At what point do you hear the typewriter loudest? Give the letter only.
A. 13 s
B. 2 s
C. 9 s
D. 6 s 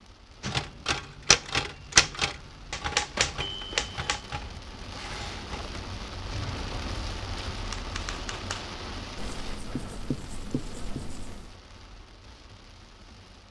B.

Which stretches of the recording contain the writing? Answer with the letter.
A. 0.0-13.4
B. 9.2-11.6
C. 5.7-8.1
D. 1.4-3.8
B.